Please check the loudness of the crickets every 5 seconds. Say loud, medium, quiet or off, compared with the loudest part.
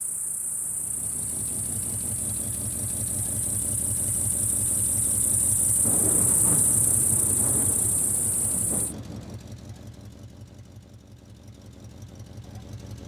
medium, loud, off.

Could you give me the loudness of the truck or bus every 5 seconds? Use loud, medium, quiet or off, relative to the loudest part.
loud, loud, medium.